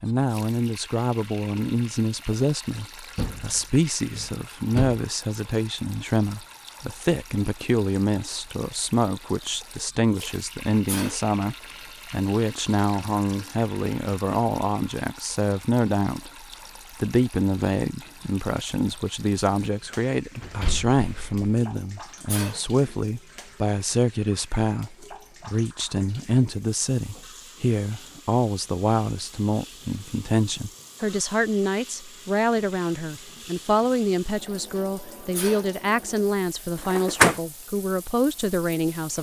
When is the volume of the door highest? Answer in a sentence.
The loudest moment of the door is at 37 seconds.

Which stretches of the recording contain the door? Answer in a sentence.
The door can be heard from 3.1 to 5.0 s, from 20.4 to 21.5 s and from 36.9 to 37.4 s.